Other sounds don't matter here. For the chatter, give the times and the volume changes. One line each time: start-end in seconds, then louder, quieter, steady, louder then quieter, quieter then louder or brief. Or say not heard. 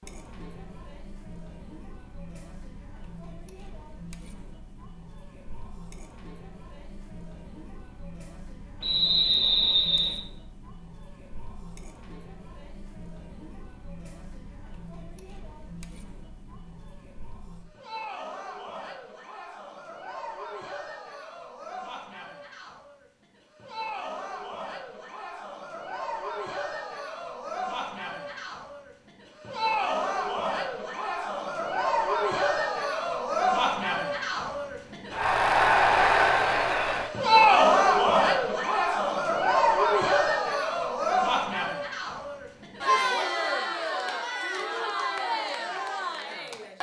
0.0-46.7 louder.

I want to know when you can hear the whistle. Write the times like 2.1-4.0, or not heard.
8.8-10.2.